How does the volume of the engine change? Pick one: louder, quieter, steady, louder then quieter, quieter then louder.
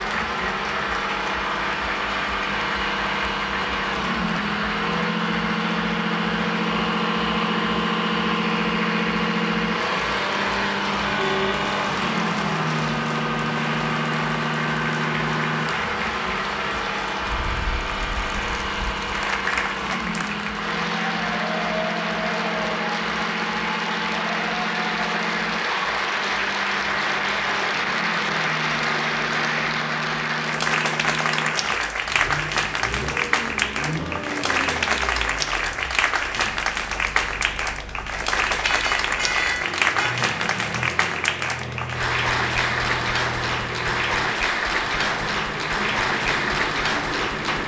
quieter.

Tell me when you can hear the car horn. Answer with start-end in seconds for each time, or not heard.
11.2-11.6, 38.6-40.1.